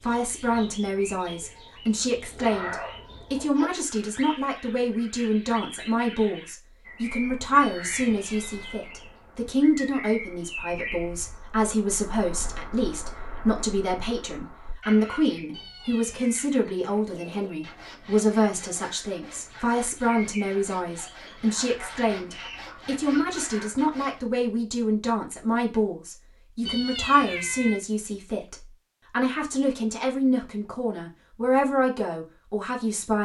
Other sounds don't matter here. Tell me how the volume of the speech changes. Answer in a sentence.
The loudness of the speech stays about the same.